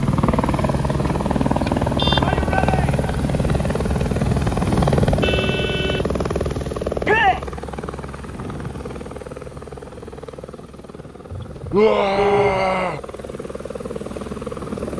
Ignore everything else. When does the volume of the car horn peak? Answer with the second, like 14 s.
12 s.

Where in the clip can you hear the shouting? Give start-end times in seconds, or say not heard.
2.2-3.0, 7.0-7.5, 11.7-13.0.